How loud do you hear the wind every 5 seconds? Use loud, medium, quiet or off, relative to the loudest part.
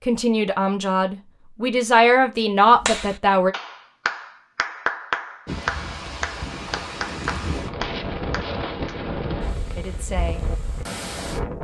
off, loud, loud.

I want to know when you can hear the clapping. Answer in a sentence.
The clapping can be heard from 2.8 to 8.9 s.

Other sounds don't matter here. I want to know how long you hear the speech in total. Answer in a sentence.
The speech can be heard for 4 seconds in total.